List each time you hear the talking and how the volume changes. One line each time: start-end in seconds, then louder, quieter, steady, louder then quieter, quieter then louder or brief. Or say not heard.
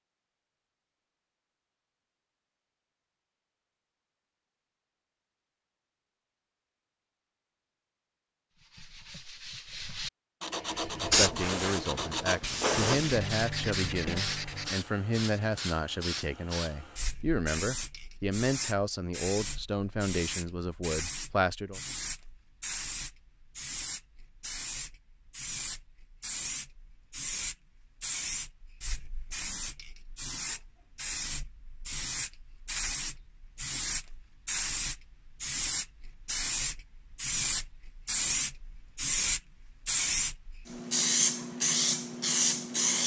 11.0-21.8 steady.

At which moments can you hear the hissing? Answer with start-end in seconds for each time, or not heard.
10.8-43.0.